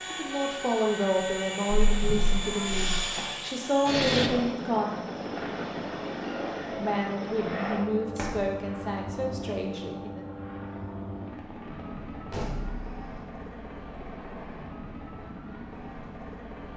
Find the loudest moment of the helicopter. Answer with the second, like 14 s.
4 s.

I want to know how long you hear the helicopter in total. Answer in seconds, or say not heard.
17 s.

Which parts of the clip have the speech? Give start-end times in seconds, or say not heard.
0.1-5.0, 6.8-10.2.